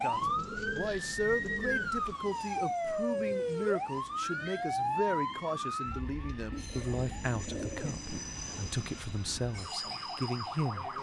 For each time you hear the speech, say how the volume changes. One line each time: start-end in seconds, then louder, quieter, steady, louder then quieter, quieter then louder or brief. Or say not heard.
0.0-10.9 steady.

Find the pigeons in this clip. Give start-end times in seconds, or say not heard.
0.1-2.1, 6.5-8.1.